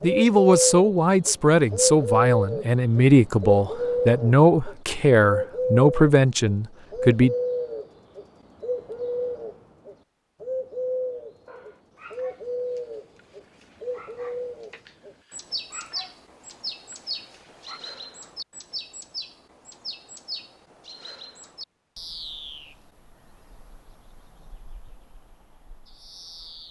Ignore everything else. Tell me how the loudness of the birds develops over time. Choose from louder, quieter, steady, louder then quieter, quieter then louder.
quieter.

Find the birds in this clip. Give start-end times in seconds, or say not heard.
0.0-26.6.